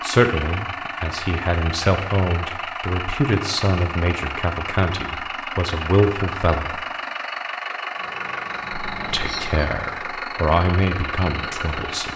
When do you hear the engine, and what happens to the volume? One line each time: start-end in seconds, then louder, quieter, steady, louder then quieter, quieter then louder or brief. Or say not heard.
0.0-12.1 steady.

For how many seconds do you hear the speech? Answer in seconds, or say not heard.
10 s.